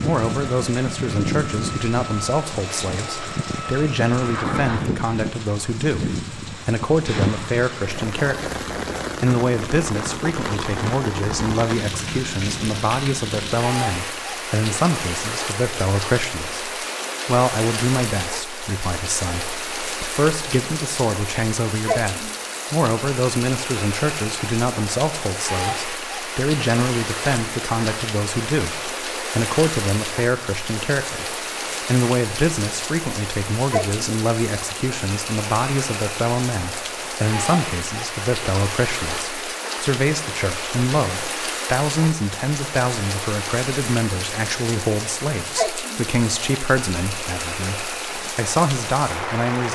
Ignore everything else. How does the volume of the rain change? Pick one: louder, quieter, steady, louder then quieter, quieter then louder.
steady.